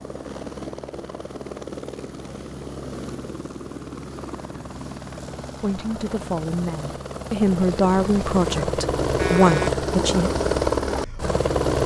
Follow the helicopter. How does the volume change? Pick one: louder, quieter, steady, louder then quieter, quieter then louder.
louder.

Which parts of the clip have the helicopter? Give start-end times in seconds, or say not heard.
0.0-11.8.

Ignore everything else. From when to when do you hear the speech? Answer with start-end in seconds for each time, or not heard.
5.6-10.3.